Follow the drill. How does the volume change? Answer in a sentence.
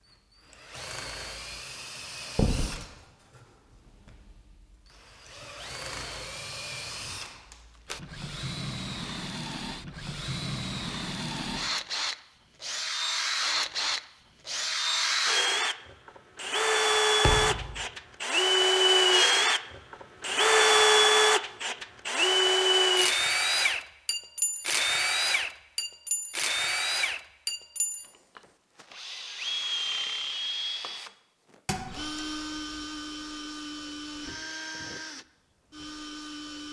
The loudness of the drill goes up, then down.